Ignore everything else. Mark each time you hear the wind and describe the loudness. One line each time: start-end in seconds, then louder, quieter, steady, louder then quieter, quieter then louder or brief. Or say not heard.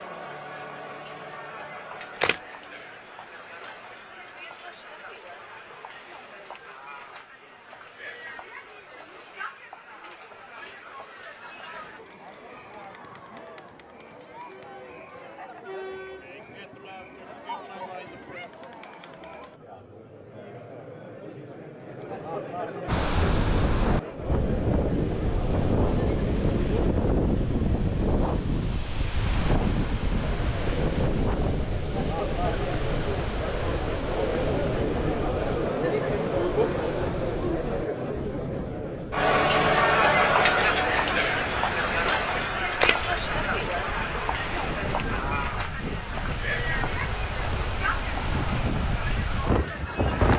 22.9-50.3 quieter then louder.